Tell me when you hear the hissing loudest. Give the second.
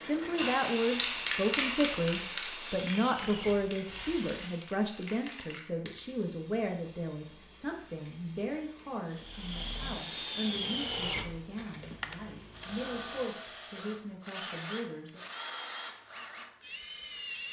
1 s.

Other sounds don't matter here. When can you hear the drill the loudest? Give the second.
11 s.